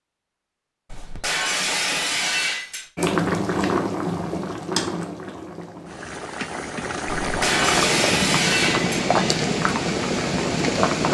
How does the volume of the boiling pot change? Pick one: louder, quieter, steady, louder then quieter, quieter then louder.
quieter then louder.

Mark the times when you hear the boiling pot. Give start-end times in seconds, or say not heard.
3.0-11.0.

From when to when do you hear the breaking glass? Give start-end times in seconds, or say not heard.
0.9-2.9, 7.2-8.9.